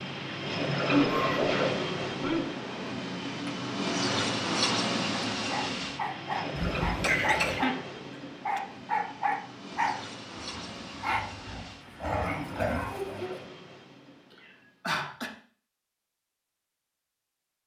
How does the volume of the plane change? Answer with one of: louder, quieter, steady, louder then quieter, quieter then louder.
quieter.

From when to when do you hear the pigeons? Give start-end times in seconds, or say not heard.
not heard.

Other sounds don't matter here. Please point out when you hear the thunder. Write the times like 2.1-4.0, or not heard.
6.5-7.5.